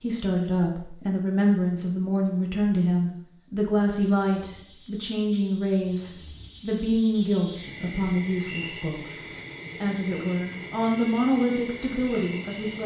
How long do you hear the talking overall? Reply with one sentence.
You can hear the talking for 13 seconds altogether.